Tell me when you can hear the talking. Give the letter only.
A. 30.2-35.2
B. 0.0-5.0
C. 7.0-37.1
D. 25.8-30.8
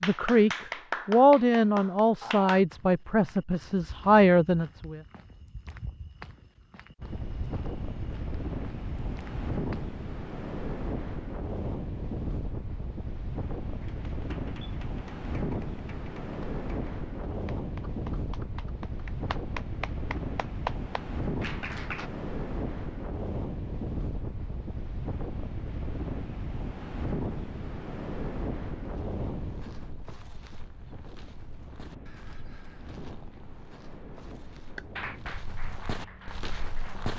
B.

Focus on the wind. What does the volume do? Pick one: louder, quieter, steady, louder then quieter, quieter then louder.
quieter.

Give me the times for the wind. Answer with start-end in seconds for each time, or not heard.
7.0-37.1.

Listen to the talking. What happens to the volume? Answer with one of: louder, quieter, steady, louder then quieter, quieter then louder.
quieter then louder.